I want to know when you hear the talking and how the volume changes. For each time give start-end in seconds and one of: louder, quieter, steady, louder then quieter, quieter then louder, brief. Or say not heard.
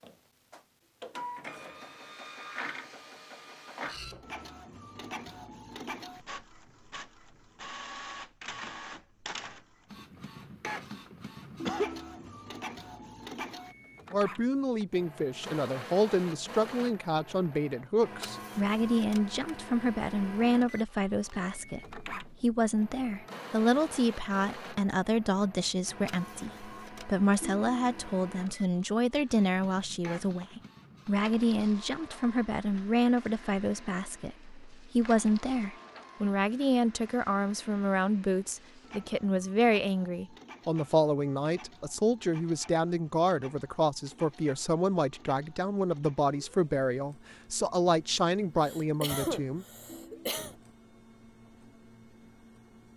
14.1-49.6 steady.